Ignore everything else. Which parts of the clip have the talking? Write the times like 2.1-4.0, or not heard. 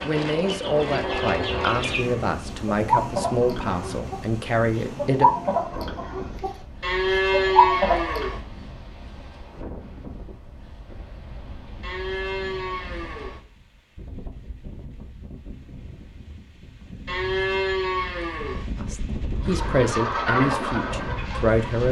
0.0-5.3, 18.8-21.8.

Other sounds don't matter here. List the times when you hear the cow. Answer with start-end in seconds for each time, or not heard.
0.8-2.3, 6.8-8.4, 11.8-13.4, 17.1-18.7.